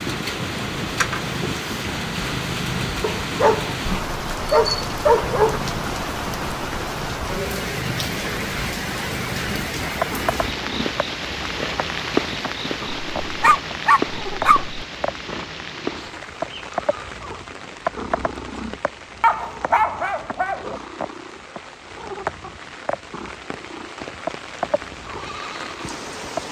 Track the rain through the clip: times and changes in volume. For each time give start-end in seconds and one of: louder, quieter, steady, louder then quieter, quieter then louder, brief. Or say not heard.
0.0-26.4 quieter.